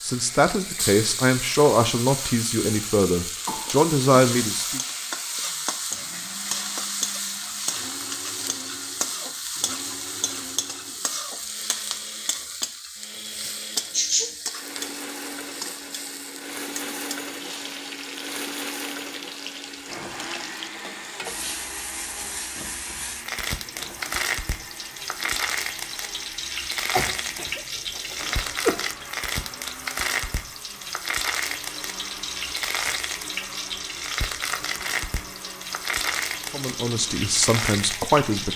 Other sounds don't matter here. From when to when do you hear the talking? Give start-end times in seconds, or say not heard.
0.0-4.8, 36.5-38.5.